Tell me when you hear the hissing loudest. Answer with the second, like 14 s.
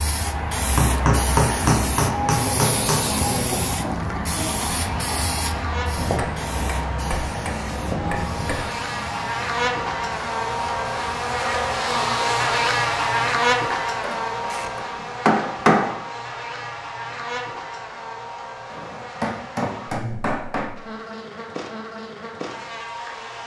3 s.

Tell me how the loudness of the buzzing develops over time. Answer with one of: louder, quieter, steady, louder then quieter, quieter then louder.
louder then quieter.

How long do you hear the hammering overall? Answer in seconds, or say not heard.
9 s.